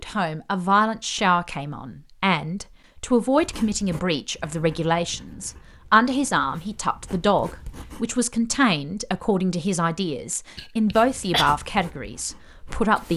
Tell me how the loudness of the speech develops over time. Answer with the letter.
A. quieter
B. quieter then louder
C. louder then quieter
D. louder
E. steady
E.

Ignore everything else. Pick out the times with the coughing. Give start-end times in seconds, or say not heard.
10.6-11.5.